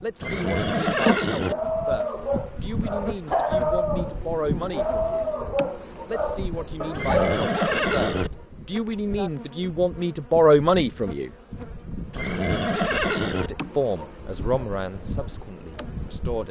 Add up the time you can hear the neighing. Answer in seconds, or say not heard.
4 s.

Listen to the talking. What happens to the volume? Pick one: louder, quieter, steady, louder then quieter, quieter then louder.
louder then quieter.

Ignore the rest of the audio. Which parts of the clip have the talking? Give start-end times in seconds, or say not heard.
0.0-5.2, 6.0-11.3, 13.3-16.4.